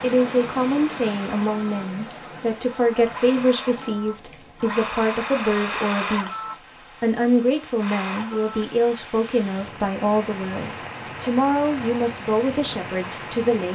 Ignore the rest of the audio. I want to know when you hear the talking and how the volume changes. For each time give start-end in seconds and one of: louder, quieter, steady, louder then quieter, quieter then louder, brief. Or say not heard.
0.0-13.6 steady.